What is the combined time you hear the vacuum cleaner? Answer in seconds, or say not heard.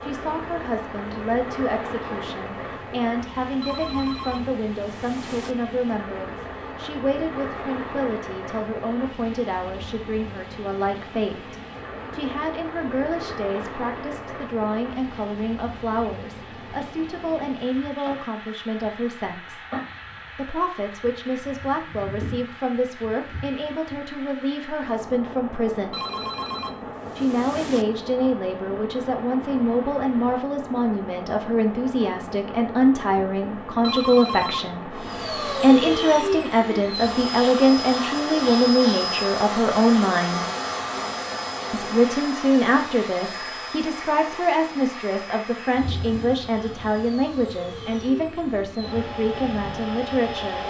16 s.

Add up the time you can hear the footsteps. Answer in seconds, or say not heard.
not heard.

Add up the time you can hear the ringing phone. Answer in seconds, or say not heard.
5 s.